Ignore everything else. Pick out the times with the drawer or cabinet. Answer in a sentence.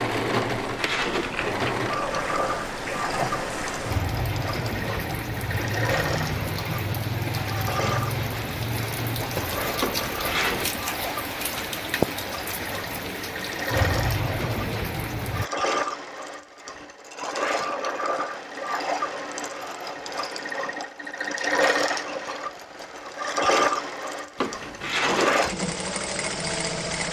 The drawer or cabinet can be heard from 0.3 to 1.8 s, from 9.8 to 10.7 s and from 24.4 to 25.5 s.